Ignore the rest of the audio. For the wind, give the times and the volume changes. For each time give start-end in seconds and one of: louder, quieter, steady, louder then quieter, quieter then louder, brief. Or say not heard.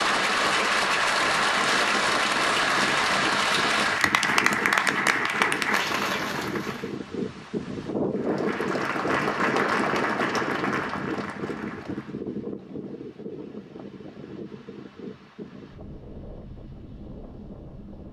0.0-18.0 louder then quieter.